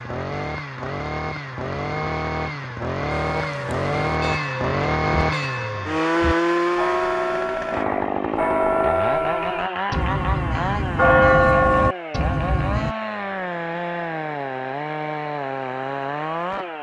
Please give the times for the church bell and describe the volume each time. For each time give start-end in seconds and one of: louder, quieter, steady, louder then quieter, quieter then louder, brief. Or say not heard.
3.1-12.9 louder.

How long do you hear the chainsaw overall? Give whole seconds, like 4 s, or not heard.
17 s.